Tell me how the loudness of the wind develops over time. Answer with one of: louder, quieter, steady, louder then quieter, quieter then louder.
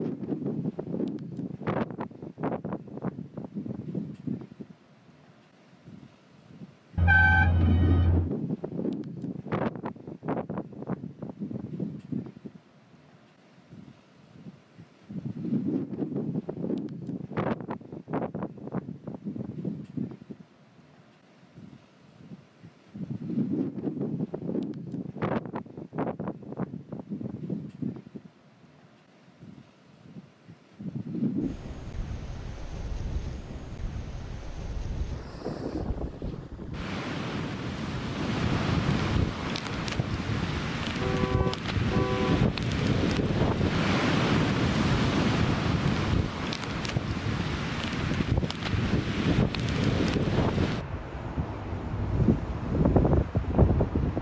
louder.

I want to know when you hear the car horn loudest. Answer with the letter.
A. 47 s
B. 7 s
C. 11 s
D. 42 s
B.